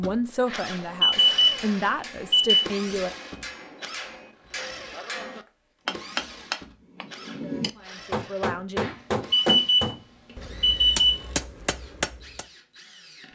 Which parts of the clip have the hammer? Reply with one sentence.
The hammer can be heard from 0.6 to 12.4 s.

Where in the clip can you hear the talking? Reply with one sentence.
The talking can be heard from 0.0 to 3.1 s and from 7.3 to 8.9 s.